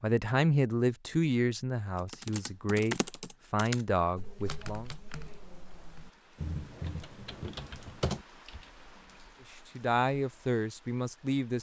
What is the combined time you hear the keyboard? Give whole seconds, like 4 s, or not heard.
7 s.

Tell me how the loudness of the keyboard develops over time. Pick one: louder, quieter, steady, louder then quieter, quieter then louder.
quieter then louder.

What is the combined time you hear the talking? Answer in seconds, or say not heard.
7 s.